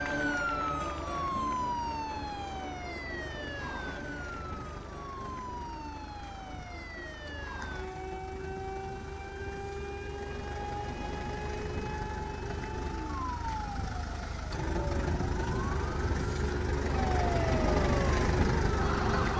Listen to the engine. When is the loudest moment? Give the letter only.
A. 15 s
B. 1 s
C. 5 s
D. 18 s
D.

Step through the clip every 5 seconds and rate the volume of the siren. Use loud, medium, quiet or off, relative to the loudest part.
loud, medium, medium, loud.